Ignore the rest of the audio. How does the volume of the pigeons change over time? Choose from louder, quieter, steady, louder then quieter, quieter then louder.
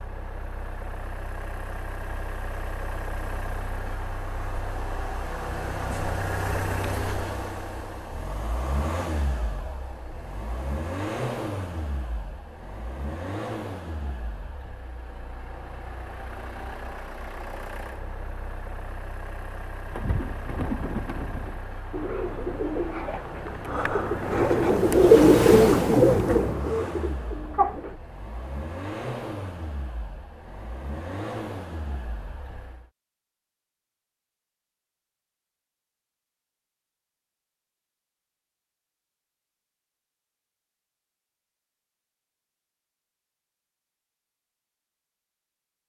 louder then quieter.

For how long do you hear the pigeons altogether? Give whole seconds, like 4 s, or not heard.
8 s.